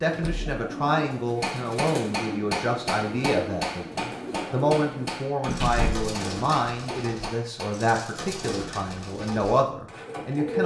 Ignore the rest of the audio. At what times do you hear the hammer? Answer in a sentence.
You can hear the hammer from 1.4 to 7.8 s.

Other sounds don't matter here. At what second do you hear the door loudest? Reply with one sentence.
The loudest moment of the door is at 6 seconds.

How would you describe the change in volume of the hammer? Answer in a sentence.
The loudness of the hammer goes down.